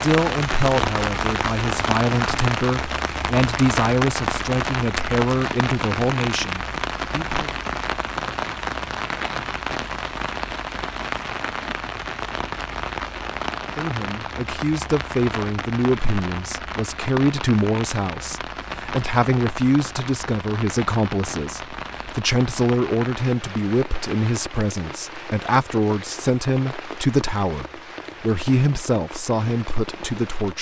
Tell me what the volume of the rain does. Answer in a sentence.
The loudness of the rain goes down.